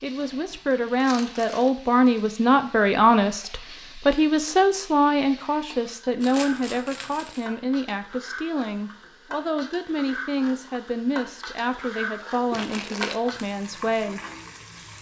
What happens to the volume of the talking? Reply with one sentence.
The loudness of the talking goes down.